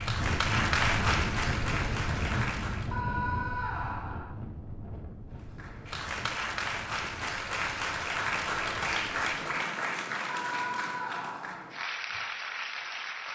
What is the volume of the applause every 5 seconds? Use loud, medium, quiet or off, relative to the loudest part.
loud, loud, medium.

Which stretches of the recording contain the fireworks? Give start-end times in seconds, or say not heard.
not heard.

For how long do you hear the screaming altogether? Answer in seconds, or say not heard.
3 s.